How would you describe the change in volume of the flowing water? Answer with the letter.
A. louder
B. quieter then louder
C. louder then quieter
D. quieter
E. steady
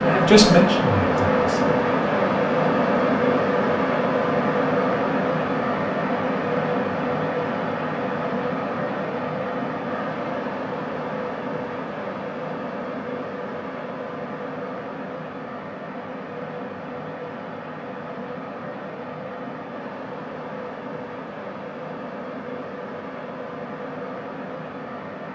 D.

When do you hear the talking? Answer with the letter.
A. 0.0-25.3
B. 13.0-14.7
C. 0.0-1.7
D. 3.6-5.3
C.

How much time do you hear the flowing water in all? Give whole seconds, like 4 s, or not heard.
25 s.